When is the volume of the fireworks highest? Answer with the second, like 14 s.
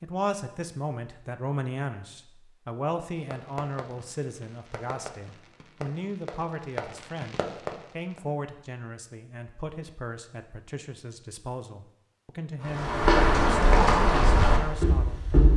8 s.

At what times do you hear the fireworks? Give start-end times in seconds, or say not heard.
3.1-8.2.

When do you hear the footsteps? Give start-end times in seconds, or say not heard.
12.6-15.5.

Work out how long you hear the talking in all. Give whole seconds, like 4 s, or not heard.
15 s.